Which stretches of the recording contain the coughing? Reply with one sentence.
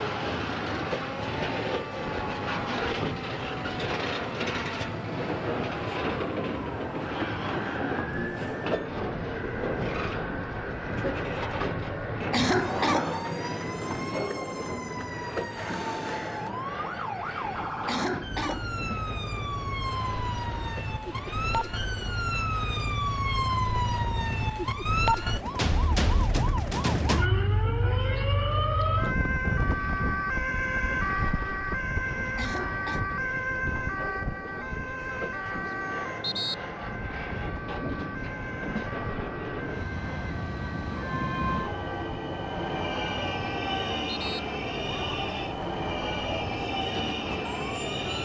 You can hear the coughing from 12.3 to 13.2 s, from 17.9 to 18.7 s and from 32.4 to 33.0 s.